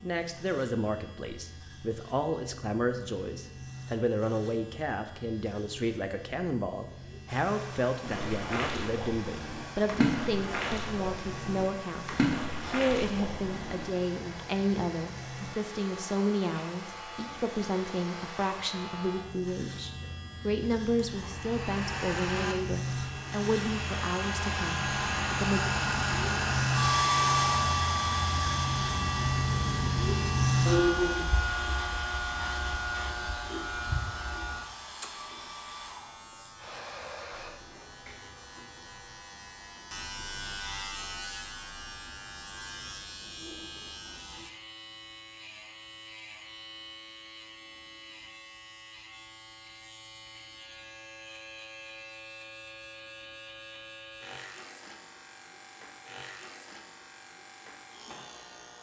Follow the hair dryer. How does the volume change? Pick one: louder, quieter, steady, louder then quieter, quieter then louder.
louder then quieter.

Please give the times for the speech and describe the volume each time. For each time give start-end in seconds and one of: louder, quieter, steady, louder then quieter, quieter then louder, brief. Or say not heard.
0.0-25.6 steady.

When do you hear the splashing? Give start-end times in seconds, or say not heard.
8.1-13.8.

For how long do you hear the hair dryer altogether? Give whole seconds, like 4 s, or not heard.
30 s.